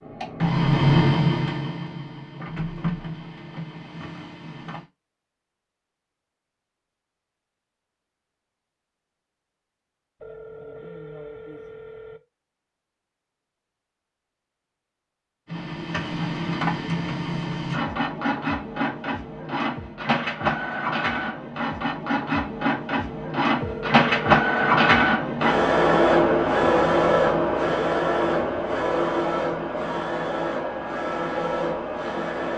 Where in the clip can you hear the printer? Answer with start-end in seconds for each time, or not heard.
0.0-4.8, 15.4-32.5.